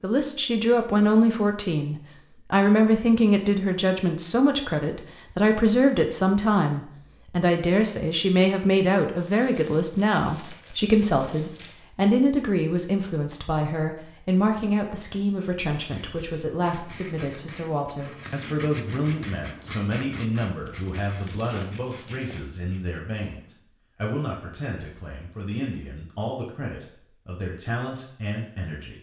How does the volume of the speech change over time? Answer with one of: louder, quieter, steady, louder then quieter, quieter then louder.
quieter.